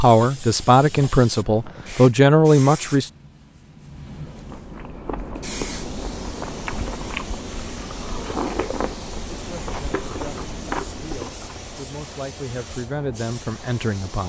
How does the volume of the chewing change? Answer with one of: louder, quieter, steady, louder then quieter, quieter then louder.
steady.